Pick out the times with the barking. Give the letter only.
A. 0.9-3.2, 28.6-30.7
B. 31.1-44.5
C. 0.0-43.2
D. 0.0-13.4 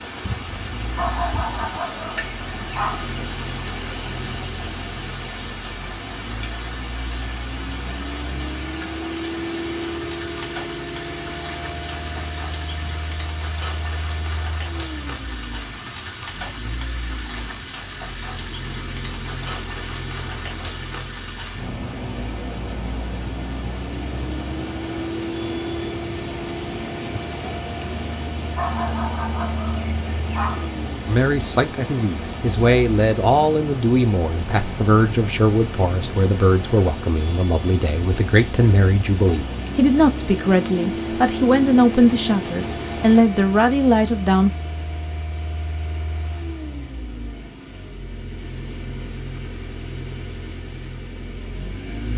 A.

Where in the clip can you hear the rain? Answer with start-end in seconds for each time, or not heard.
0.0-43.2.